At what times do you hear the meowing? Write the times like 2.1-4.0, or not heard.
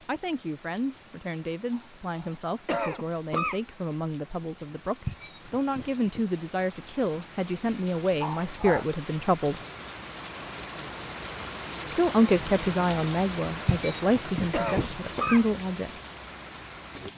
5.0-6.2, 13.7-15.4.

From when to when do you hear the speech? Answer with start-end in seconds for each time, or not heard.
0.1-9.6, 11.9-15.9.